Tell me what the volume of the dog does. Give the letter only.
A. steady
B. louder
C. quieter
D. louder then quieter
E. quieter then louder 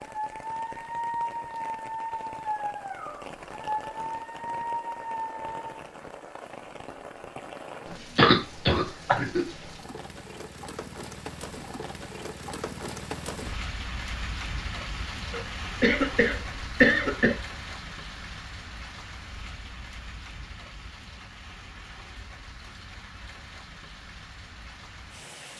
A.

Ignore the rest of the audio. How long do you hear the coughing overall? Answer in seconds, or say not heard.
3 s.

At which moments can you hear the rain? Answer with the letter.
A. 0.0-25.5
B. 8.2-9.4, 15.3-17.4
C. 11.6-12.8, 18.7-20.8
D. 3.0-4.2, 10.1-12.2
A.